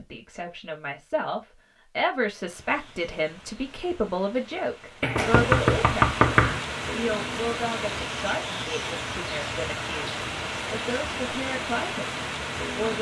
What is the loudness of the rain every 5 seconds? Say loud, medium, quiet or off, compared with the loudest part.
quiet, loud, loud.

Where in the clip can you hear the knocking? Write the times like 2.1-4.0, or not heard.
5.0-6.6.